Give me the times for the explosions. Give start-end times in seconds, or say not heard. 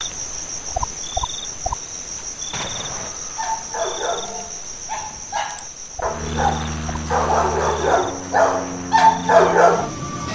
2.5-3.1.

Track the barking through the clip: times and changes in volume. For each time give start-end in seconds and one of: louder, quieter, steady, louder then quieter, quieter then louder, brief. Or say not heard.
3.0-9.9 louder.